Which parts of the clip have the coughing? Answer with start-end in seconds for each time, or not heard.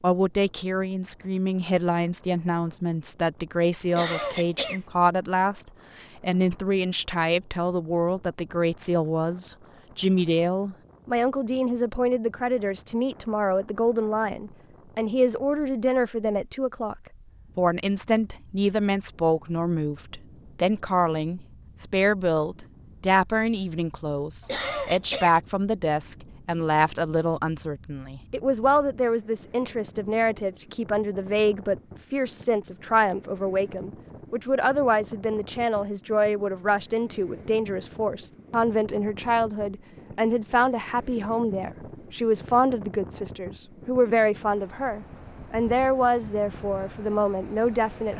3.9-4.8, 24.4-25.4.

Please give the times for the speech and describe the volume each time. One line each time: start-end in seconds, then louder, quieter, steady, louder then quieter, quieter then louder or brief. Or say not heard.
0.0-48.1 steady.